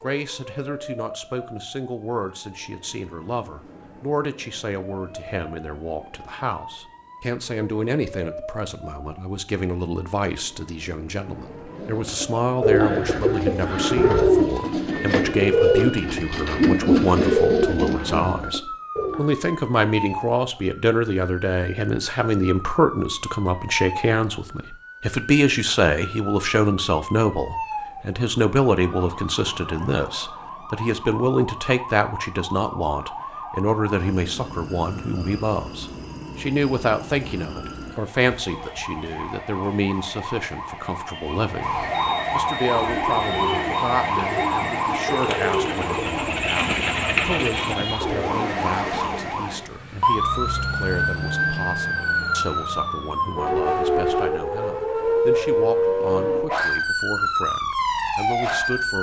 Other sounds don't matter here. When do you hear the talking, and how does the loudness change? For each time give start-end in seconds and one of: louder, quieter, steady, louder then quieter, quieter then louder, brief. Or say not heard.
0.0-58.9 louder then quieter.